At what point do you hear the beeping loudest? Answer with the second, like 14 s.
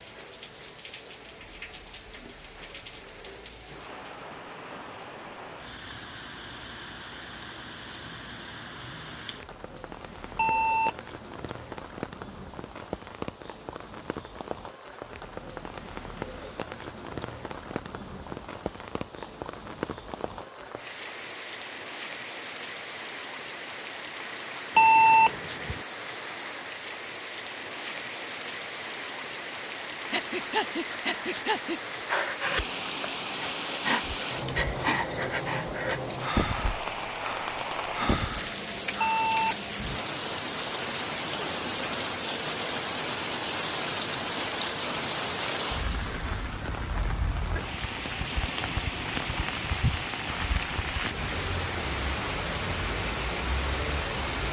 25 s.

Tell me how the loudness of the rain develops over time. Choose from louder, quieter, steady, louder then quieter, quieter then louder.
louder.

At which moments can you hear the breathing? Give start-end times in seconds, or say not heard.
30.1-39.4.